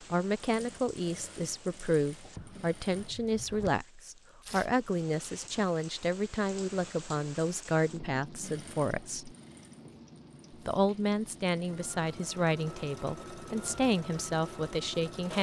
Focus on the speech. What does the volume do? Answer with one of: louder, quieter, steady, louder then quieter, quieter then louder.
steady.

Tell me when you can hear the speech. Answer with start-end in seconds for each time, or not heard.
0.1-9.3, 10.5-15.3.